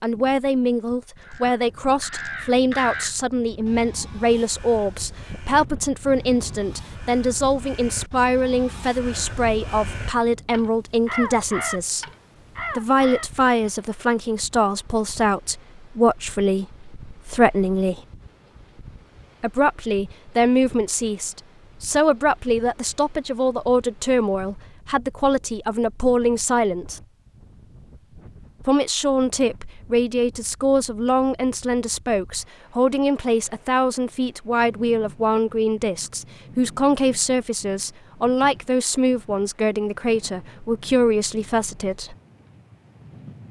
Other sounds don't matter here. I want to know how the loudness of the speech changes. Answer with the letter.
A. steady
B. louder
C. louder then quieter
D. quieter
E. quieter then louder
A.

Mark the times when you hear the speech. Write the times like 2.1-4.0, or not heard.
0.0-12.1, 12.8-18.0, 19.4-27.0, 28.6-42.1.